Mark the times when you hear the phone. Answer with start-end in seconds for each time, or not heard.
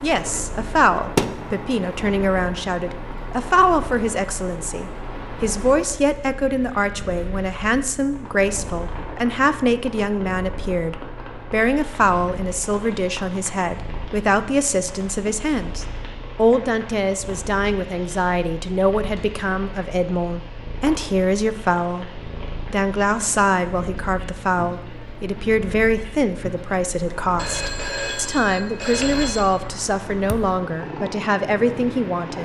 27.4-29.4.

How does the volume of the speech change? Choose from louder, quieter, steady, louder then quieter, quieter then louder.
steady.